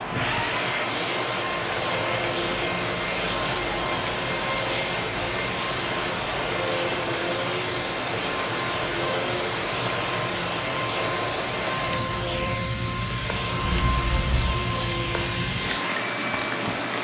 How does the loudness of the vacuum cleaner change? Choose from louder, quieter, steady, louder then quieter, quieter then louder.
steady.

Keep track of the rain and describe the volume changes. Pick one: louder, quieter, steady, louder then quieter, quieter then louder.
steady.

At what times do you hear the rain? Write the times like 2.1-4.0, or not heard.
0.0-16.9.